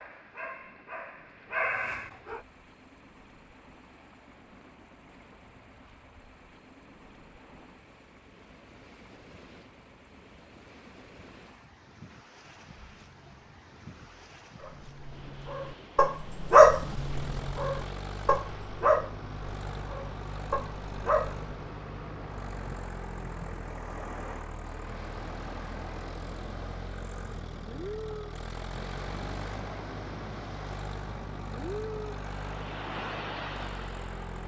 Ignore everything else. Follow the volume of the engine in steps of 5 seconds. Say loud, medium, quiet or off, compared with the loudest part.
quiet, quiet, quiet, loud, loud, loud, loud.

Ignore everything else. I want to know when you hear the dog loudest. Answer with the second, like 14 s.
17 s.